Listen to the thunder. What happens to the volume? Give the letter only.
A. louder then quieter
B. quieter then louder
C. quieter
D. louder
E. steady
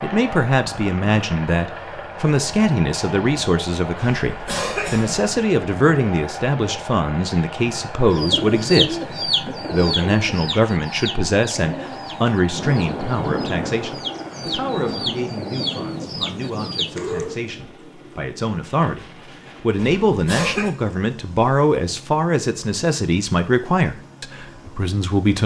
C.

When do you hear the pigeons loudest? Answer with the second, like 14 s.
9 s.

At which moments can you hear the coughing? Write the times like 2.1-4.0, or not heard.
4.0-5.2, 19.8-20.7.